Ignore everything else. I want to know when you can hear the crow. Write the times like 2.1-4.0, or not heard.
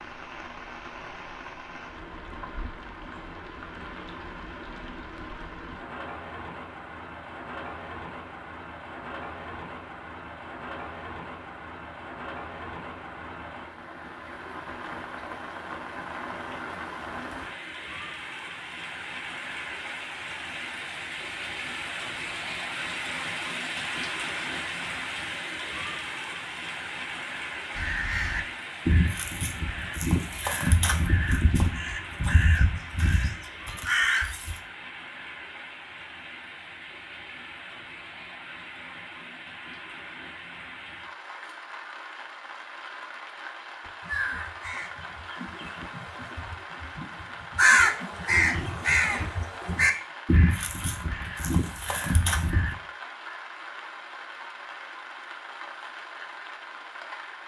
27.8-34.6, 43.9-52.8.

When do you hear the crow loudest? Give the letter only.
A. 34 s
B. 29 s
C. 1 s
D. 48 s
D.